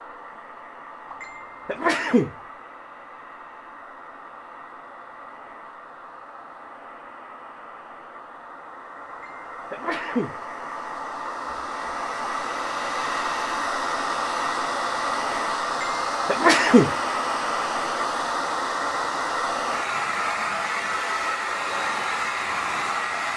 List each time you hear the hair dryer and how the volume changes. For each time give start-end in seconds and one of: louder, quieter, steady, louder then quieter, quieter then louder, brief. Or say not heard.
0.0-23.3 louder.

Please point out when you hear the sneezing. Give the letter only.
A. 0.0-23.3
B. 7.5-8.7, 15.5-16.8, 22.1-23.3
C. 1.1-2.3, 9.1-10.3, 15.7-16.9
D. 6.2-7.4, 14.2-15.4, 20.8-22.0
C.